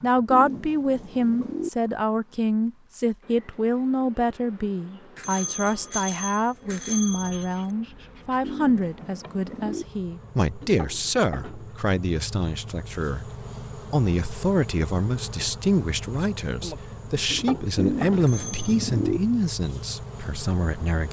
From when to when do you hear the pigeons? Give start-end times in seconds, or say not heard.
0.3-1.7, 8.4-9.8, 17.8-19.2.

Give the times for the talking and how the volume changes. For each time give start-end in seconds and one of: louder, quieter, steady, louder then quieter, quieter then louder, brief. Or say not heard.
0.0-21.0 steady.